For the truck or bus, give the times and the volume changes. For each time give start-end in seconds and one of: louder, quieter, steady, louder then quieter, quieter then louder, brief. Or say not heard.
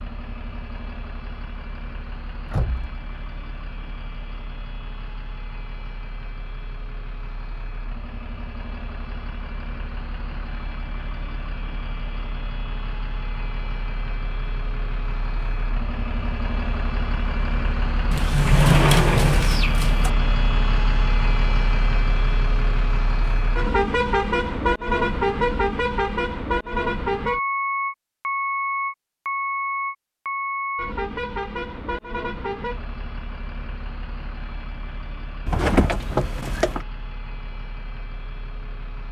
0.0-39.0 louder then quieter.